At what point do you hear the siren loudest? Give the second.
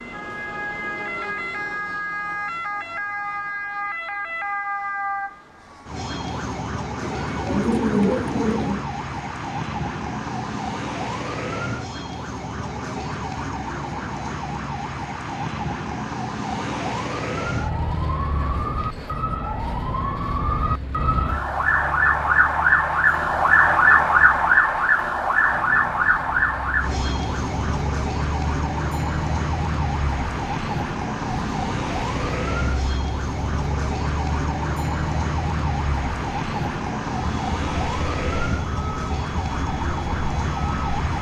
24 s.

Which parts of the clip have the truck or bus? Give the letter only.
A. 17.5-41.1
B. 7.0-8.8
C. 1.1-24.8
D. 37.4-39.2
A.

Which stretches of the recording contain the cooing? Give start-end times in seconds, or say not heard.
7.0-8.8.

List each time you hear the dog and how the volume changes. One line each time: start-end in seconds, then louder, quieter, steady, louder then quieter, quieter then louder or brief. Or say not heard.
not heard.